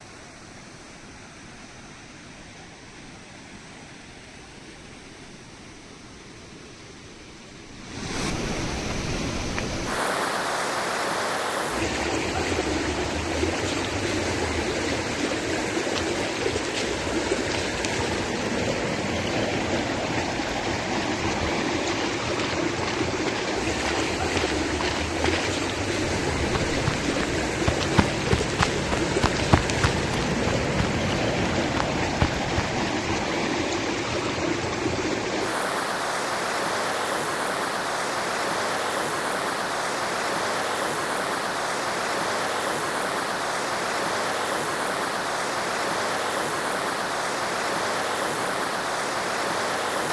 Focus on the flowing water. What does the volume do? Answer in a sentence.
The volume of the flowing water goes up.